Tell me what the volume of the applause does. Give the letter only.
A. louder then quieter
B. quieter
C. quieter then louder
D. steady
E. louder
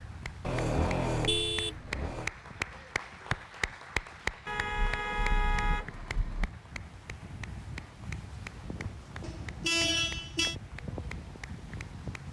B.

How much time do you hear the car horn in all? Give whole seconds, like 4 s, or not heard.
5 s.